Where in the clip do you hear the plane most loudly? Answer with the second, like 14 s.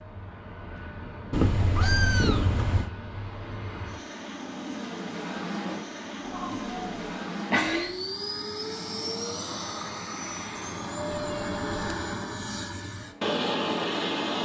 14 s.